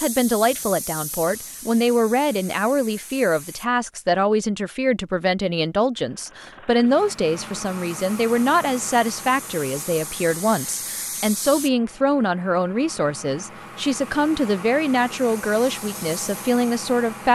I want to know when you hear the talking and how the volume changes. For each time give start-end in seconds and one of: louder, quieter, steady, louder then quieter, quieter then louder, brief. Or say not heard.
0.0-17.3 steady.